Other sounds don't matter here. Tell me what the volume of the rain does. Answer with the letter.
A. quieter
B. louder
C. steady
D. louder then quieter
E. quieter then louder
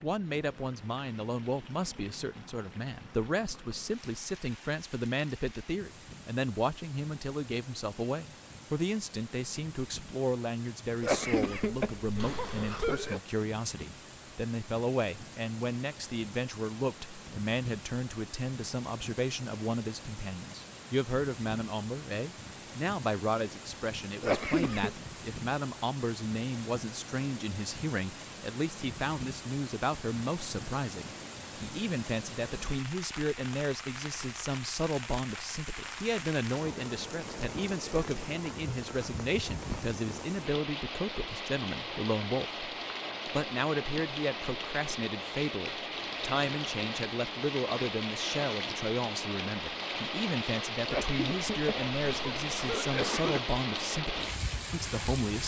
B.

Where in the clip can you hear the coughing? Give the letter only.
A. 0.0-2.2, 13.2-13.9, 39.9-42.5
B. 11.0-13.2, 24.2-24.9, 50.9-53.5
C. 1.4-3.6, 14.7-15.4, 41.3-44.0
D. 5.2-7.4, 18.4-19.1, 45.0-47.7
B.